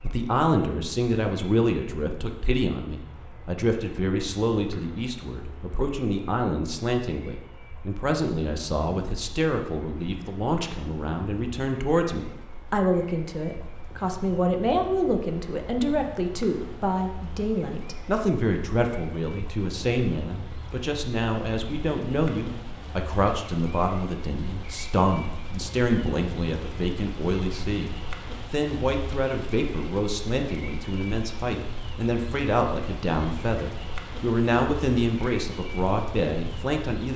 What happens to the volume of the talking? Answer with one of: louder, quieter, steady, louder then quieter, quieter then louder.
steady.